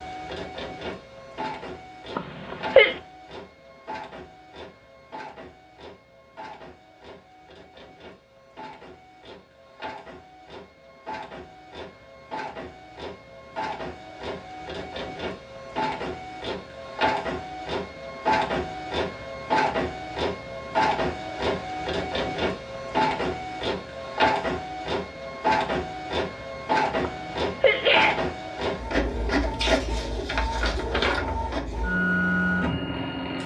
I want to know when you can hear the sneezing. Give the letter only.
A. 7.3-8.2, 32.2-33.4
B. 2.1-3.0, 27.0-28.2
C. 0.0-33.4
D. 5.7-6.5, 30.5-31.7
B.